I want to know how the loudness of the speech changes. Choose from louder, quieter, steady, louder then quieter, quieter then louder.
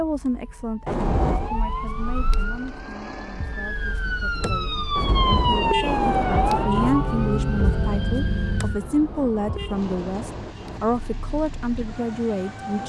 quieter then louder.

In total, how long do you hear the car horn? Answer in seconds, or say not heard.
5 s.